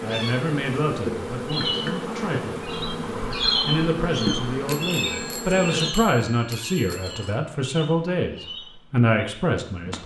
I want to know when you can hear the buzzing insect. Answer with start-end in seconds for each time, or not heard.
0.0-5.9.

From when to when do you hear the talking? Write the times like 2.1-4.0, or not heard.
0.0-10.0.